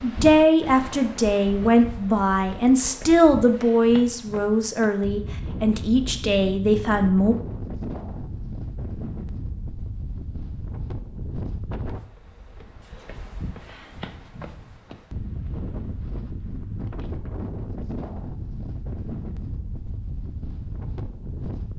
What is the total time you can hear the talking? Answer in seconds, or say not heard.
7 s.